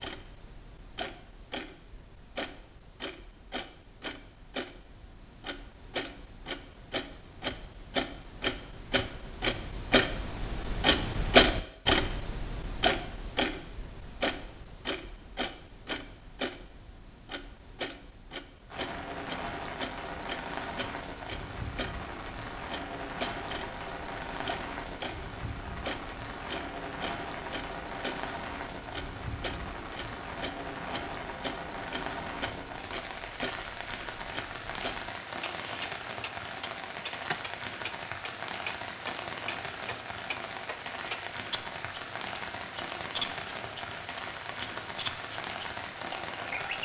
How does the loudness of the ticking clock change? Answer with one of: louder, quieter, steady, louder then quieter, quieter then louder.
louder then quieter.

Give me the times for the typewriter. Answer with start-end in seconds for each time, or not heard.
not heard.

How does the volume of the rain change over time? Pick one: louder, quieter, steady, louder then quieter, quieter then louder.
steady.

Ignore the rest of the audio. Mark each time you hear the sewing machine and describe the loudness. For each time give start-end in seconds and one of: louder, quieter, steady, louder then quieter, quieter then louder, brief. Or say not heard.
not heard.